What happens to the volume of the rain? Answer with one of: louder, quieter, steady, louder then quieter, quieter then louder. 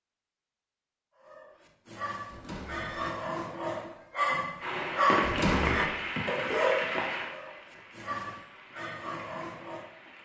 quieter.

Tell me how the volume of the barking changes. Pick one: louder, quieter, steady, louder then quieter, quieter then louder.
louder then quieter.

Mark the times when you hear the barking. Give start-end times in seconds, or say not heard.
1.2-9.9.